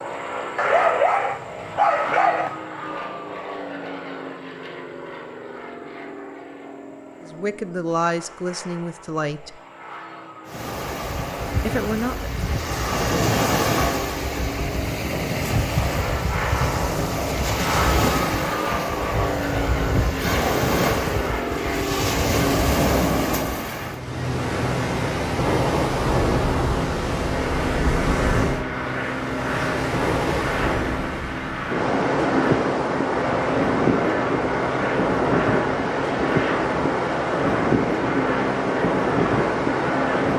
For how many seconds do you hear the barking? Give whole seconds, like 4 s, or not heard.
2 s.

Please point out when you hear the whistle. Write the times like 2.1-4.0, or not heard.
not heard.